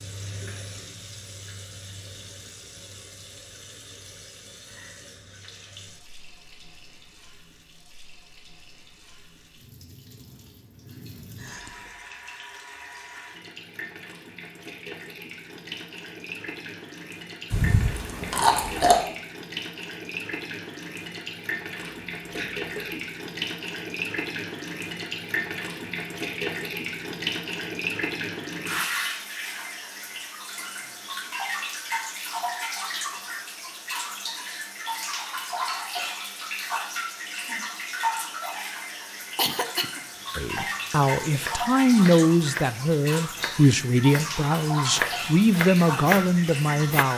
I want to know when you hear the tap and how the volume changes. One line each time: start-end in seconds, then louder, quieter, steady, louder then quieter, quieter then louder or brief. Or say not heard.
0.0-47.1 louder.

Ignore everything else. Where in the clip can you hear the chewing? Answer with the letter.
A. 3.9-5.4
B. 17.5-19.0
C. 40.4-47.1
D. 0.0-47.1
B.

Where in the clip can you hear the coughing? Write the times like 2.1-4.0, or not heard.
11.3-12.0, 21.8-23.0, 39.1-40.0.